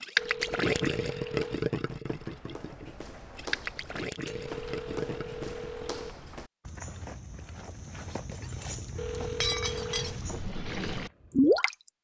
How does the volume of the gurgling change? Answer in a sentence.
The loudness of the gurgling goes down, then up.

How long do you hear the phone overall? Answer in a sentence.
You can hear the phone for 5 seconds altogether.